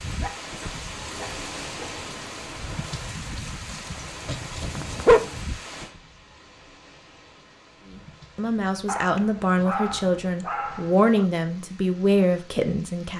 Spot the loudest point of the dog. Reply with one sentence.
The volume of the dog peaks at 5 seconds.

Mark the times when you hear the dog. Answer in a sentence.
The dog can be heard from 0.2 to 1.9 s, from 4.7 to 5.3 s and from 8.8 to 11.3 s.